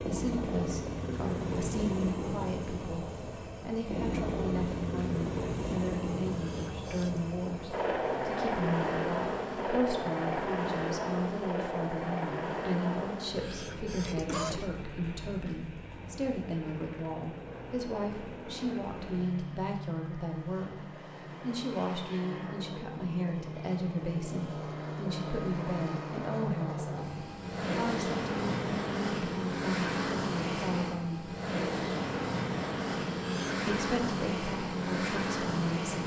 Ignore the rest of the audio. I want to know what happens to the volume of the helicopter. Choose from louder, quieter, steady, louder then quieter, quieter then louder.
quieter then louder.